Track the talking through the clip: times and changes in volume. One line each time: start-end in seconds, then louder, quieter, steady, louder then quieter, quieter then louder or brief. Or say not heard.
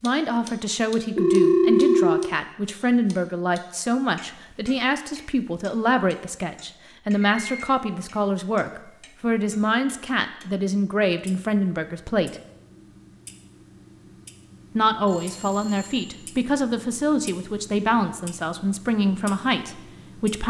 0.0-12.3 steady
14.8-20.4 steady.